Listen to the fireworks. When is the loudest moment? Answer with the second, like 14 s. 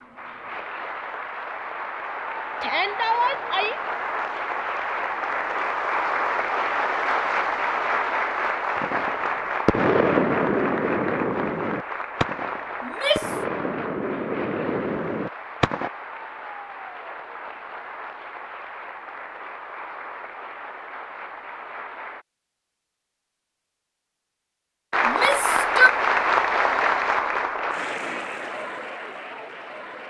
10 s.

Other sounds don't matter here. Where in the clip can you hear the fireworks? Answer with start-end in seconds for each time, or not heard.
8.8-15.9.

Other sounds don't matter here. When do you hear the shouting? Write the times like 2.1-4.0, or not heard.
2.6-3.8, 12.8-13.3, 25.1-25.9.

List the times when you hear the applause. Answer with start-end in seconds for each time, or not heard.
0.0-22.2, 24.9-30.0.